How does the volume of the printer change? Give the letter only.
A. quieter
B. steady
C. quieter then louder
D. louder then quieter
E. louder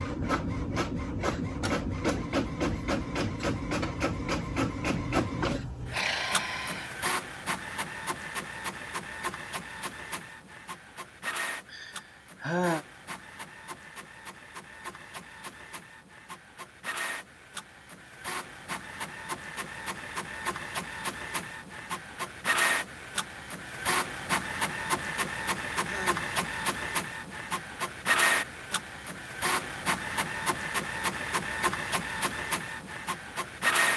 C.